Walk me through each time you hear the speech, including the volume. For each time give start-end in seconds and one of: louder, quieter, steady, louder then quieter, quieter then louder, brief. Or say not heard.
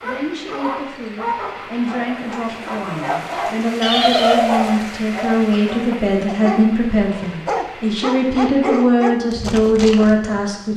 0.0-10.7 louder.